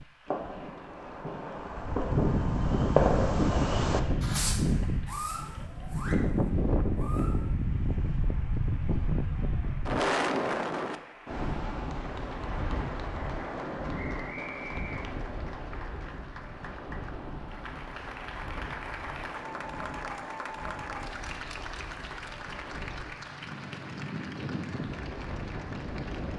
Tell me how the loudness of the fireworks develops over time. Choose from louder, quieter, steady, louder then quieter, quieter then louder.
louder then quieter.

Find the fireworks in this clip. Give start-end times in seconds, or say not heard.
0.2-7.5.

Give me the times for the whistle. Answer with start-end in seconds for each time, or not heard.
13.9-15.1.